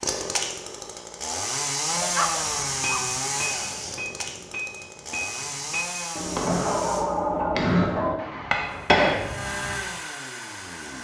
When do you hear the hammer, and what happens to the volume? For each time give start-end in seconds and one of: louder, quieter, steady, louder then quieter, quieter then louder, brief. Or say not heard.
2.4-9.8 louder.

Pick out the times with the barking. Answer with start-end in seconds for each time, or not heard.
1.9-3.1, 6.5-8.2.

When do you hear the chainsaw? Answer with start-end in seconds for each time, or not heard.
0.0-7.0, 8.7-10.9.